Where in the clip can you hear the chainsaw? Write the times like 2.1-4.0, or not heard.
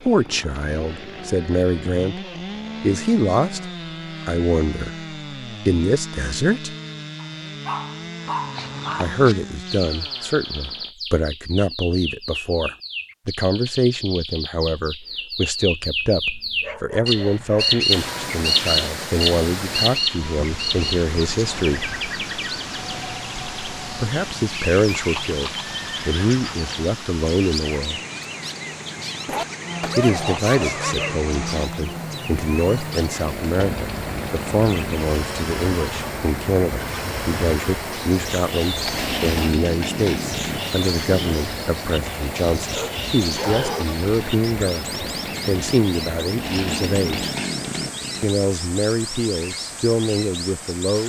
0.0-10.9, 29.6-48.3.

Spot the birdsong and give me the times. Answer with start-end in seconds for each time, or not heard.
8.3-51.0.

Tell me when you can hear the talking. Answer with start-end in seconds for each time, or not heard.
0.0-6.8, 8.9-21.9, 23.9-28.0, 29.9-47.3, 48.2-51.0.